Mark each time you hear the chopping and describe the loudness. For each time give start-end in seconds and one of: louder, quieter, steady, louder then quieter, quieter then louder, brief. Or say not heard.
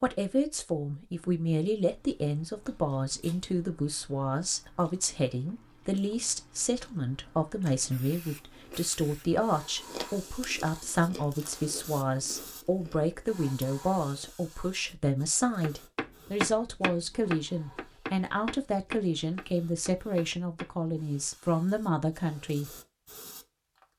15.6-20.8 quieter.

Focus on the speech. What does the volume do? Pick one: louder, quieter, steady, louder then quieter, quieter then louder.
steady.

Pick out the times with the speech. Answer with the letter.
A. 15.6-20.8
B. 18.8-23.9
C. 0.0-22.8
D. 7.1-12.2
C.